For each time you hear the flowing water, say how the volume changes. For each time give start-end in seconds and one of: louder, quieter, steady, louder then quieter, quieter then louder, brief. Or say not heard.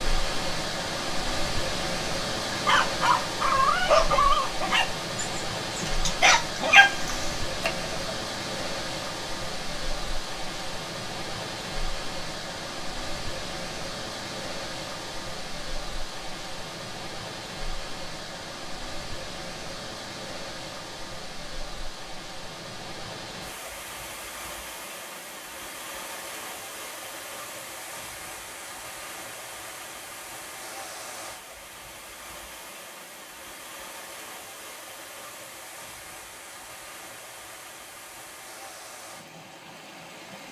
0.0-40.4 quieter.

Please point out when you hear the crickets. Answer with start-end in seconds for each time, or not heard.
not heard.